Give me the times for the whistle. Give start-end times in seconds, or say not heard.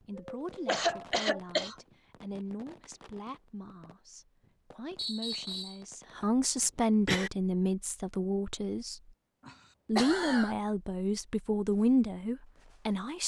5.0-5.8.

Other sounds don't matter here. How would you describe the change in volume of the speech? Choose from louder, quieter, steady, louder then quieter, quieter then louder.
louder.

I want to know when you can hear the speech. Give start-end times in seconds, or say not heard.
0.1-9.0, 9.8-13.2.